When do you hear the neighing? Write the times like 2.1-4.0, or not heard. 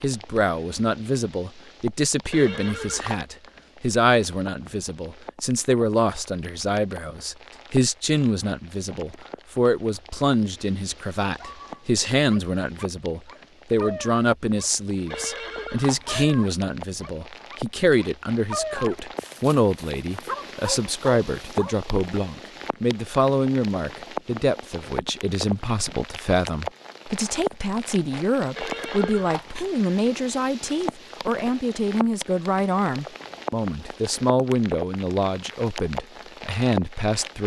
2.3-3.2, 15.1-16.2, 28.6-29.6.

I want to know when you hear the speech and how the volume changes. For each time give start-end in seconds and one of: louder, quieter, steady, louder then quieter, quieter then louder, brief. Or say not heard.
0.0-37.4 steady.